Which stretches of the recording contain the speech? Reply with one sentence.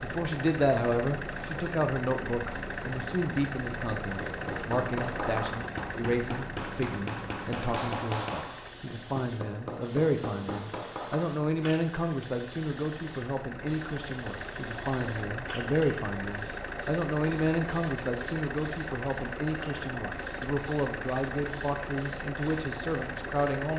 You can hear the speech from 0.0 to 23.7 s.